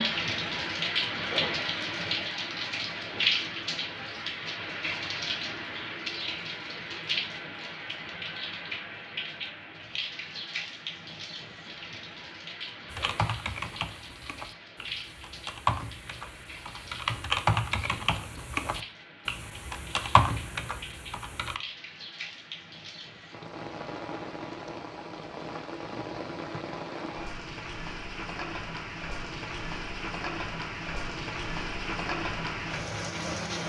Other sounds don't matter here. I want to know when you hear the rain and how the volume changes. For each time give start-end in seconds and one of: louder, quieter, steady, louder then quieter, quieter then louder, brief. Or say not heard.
0.0-33.6 quieter then louder.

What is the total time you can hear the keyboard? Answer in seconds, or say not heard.
9 s.